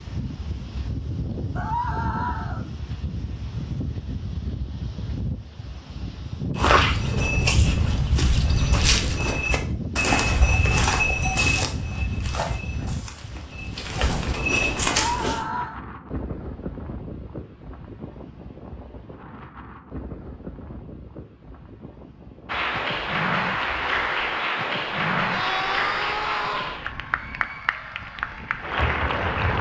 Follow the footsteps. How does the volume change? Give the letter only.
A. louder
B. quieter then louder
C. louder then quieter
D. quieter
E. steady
B.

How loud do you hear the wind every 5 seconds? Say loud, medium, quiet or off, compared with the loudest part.
loud, loud, loud, medium, medium, quiet.